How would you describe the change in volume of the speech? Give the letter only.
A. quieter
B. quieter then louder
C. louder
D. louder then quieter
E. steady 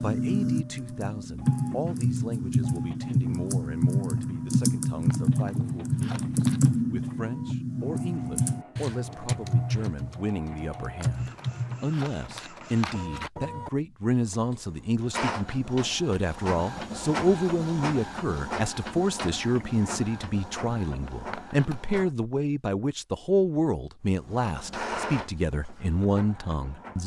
C.